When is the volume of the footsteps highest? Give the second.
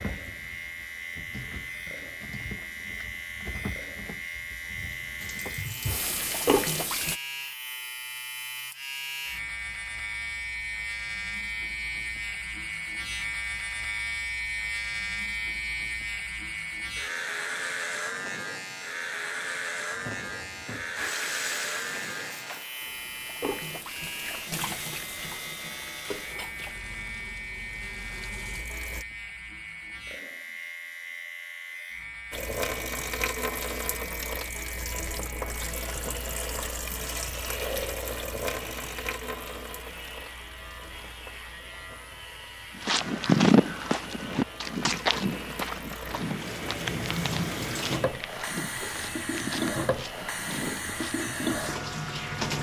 43 s.